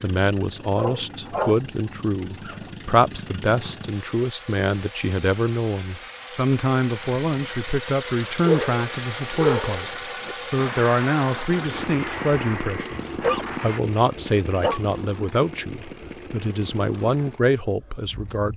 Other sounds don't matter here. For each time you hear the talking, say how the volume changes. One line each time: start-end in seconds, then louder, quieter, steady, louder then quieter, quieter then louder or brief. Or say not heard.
0.0-18.5 steady.